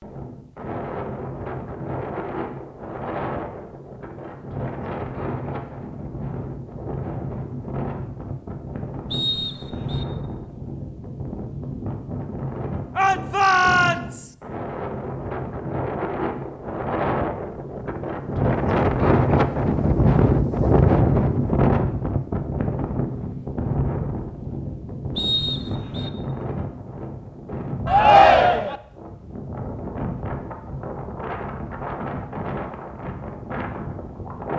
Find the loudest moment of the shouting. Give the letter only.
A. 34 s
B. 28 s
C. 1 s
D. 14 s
B.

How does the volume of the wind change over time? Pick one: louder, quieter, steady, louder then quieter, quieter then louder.
louder then quieter.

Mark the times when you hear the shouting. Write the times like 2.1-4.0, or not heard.
12.9-14.3, 27.9-28.8.